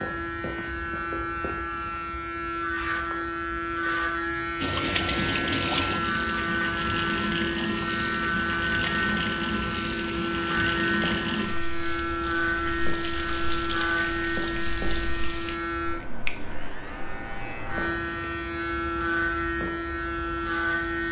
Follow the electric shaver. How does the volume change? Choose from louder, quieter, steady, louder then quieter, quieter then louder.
steady.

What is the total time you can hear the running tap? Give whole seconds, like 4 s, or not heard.
11 s.